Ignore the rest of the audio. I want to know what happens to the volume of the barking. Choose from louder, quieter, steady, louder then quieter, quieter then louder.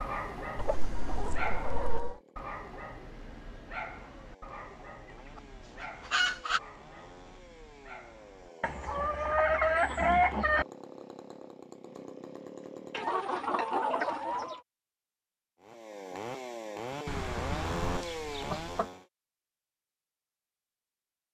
quieter.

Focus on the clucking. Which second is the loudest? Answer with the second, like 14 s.
10 s.